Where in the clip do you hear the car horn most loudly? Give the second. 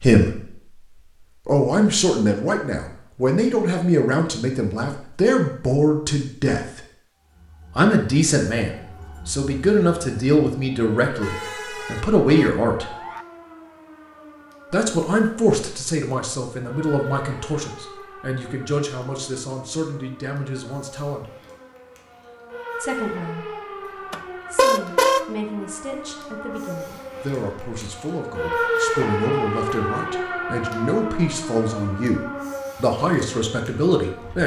25 s.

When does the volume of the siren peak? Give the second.
29 s.